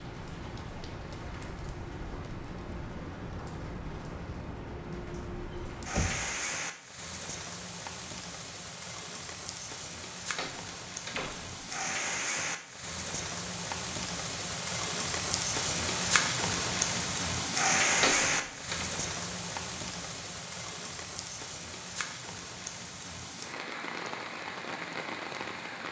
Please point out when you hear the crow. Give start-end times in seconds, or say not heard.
not heard.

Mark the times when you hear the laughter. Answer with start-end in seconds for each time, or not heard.
not heard.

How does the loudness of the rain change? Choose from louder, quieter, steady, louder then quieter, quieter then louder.
louder then quieter.